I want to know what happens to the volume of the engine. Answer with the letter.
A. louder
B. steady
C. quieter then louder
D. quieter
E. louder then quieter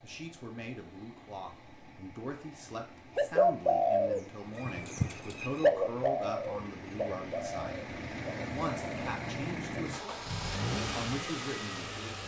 A.